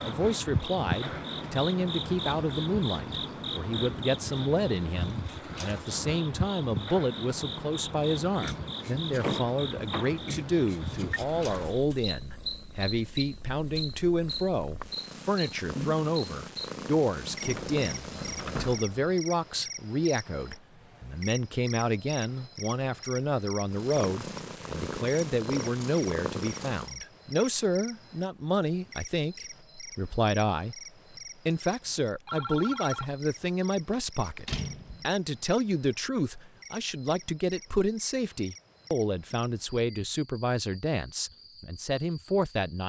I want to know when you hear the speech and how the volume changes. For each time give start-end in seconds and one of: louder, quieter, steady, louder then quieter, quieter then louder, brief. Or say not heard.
0.0-30.8 steady
31.4-42.8 steady.